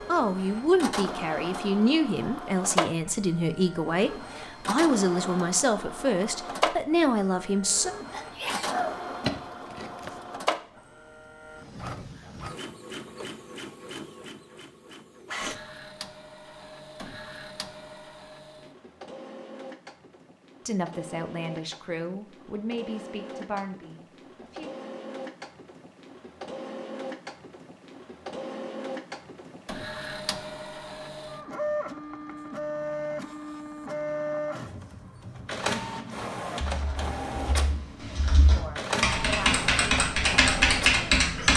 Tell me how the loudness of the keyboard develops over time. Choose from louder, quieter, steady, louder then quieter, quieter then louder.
louder.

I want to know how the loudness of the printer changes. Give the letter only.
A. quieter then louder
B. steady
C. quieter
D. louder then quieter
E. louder
A.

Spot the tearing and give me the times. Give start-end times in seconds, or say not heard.
9.2-10.2.